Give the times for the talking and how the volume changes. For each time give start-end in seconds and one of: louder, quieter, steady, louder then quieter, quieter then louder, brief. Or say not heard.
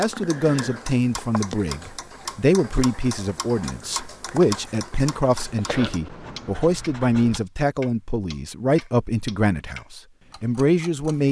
0.0-11.2 steady.